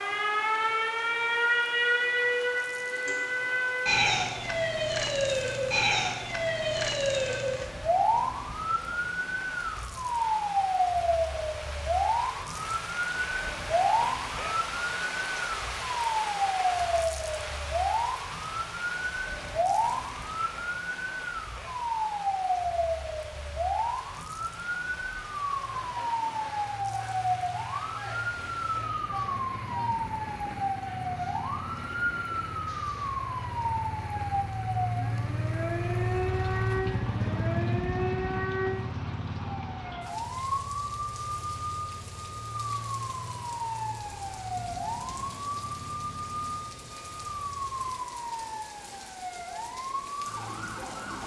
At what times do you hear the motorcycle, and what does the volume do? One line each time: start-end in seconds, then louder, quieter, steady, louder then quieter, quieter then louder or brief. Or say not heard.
26.4-47.9 louder then quieter.